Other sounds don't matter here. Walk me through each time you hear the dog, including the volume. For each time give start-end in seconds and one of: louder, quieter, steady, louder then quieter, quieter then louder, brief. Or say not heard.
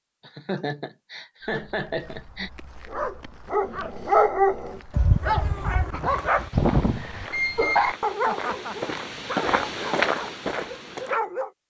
2.9-11.5 quieter.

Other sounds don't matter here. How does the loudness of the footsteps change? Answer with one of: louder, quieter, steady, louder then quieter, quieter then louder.
louder.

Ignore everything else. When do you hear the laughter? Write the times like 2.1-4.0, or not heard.
0.2-2.5, 8.2-8.9.